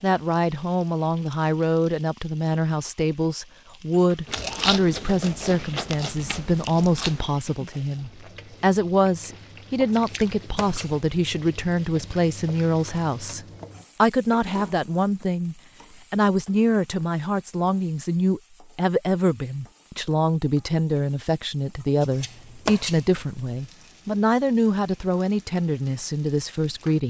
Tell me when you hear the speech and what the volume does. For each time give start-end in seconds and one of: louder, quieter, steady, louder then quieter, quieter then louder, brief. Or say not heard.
0.0-13.4 steady
14.0-27.0 steady.